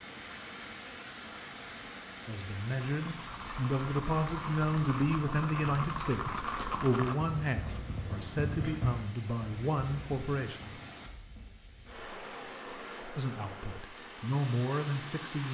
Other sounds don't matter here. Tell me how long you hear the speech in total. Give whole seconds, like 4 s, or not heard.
11 s.